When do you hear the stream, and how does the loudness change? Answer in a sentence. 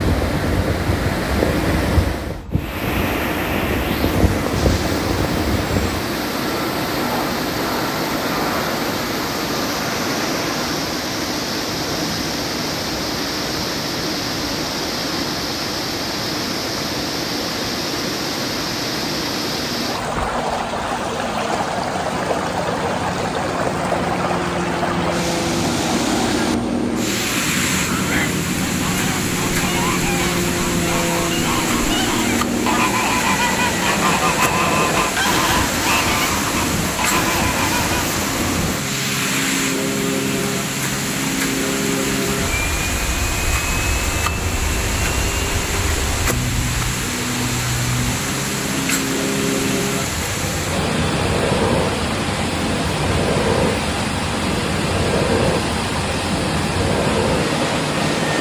You can hear the stream from 0.0 to 58.3 s, at a steady volume.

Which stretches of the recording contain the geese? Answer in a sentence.
You can hear the geese from 27.8 to 38.0 s.